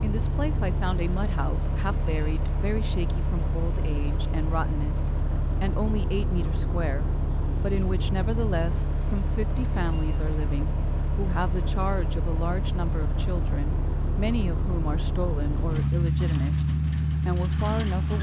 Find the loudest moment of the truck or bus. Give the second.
16 s.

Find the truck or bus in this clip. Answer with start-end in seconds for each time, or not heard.
0.0-18.1.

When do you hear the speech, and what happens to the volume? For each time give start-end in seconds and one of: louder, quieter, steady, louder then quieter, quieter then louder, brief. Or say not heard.
0.0-16.6 steady
17.2-18.1 brief.